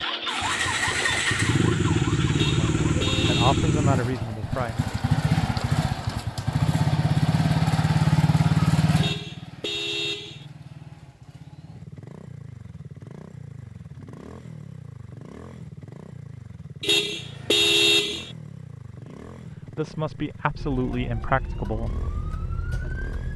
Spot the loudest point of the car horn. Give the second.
18 s.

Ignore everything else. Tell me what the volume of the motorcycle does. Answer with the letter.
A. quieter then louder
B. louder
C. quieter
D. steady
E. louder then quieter
C.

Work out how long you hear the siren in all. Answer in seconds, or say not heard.
6 s.